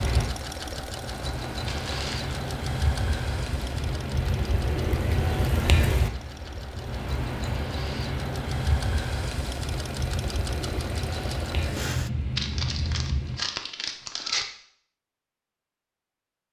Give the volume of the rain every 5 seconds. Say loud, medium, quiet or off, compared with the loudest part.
loud, loud, loud, off.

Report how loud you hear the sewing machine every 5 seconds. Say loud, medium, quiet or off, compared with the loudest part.
loud, loud, loud, off.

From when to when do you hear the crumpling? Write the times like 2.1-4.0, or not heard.
1.6-2.5, 12.3-14.4.